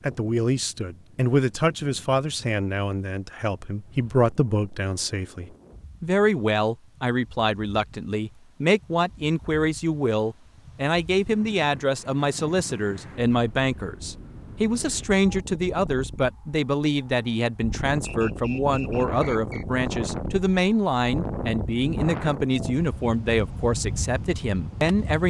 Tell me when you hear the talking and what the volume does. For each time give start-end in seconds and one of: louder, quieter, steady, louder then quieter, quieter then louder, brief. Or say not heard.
0.0-25.2 steady.